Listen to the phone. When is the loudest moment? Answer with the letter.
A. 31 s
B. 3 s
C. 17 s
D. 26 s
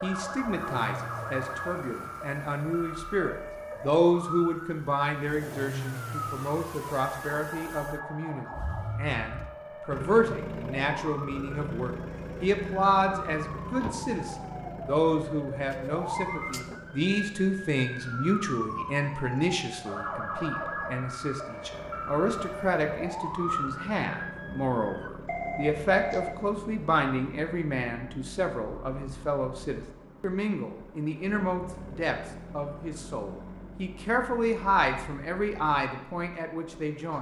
D.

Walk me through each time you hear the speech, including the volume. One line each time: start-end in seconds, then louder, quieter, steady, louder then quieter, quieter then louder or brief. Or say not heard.
0.0-37.1 steady.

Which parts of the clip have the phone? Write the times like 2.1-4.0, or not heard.
15.7-16.7, 25.2-26.4.